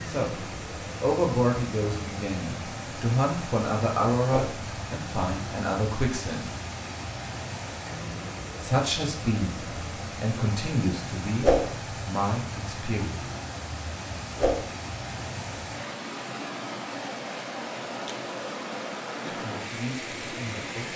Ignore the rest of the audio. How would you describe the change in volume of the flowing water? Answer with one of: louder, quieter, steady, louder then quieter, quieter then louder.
steady.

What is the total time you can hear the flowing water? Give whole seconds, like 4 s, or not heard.
21 s.